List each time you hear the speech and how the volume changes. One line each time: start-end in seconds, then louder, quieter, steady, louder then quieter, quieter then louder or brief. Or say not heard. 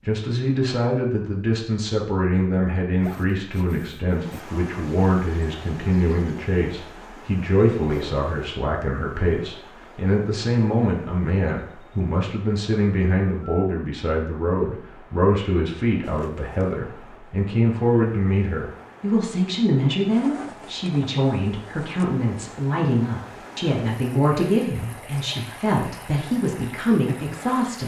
0.1-27.8 steady.